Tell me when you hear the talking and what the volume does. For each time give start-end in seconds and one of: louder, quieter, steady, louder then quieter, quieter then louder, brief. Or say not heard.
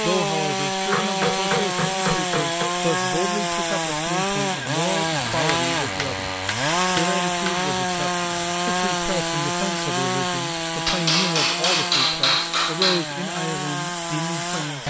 0.0-14.8 steady.